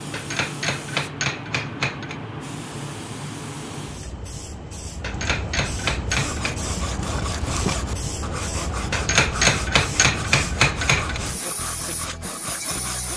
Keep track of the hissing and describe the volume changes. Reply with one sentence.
The loudness of the hissing stays about the same.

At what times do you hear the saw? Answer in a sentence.
You can hear the saw from 6.0 to 13.1 s.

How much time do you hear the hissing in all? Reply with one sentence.
The hissing can be heard for 13 seconds in total.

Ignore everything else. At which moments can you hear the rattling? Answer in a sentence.
The rattling can be heard from 7.0 to 7.8 s.